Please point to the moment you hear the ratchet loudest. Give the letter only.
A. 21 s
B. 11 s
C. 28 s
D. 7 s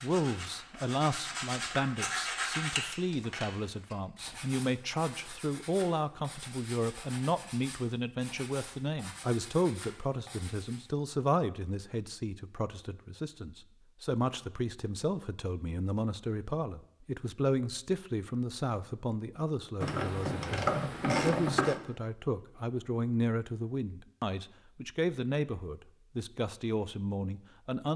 A.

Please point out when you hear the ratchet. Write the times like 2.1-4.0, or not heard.
19.8-21.8.